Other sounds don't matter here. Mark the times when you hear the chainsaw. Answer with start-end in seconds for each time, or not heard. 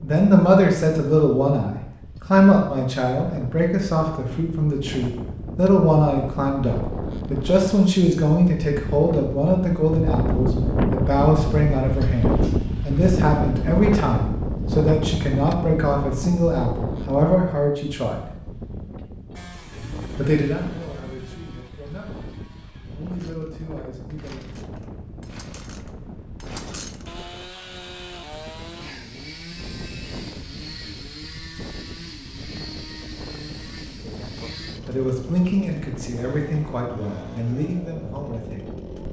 19.4-39.0.